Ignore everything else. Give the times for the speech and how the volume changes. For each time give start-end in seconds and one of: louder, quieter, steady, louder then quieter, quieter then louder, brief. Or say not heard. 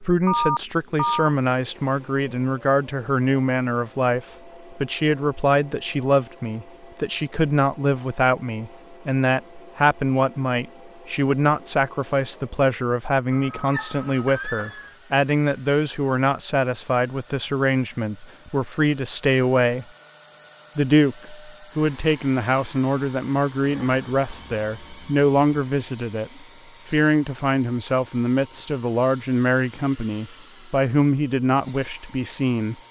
0.0-19.9 steady
20.8-32.8 steady.